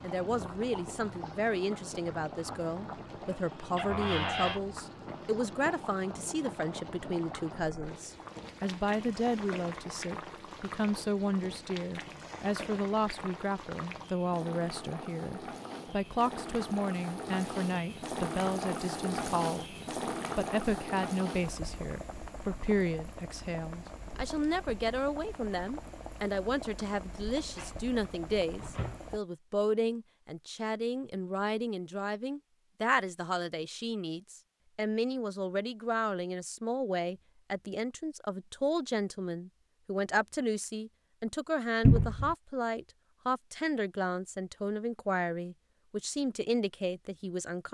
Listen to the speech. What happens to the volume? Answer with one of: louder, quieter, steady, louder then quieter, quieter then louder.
steady.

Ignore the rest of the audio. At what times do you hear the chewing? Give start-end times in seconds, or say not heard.
not heard.